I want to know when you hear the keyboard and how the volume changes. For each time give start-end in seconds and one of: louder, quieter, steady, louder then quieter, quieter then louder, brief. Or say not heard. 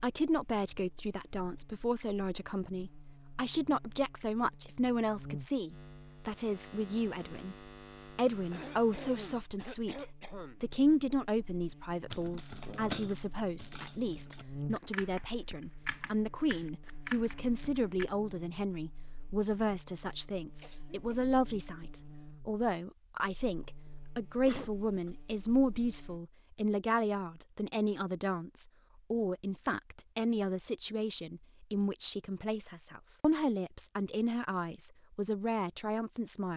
12.1-18.1 quieter then louder.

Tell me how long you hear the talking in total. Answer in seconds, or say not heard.
36 s.